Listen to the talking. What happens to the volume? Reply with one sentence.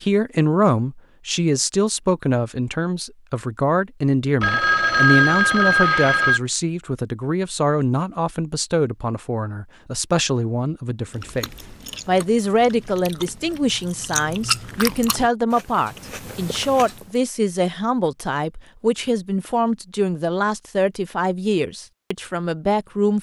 The loudness of the talking stays about the same.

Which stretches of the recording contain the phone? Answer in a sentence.
You can hear the phone from 4.4 to 6.4 s.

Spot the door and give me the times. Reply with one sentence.
The door can't be heard in this clip.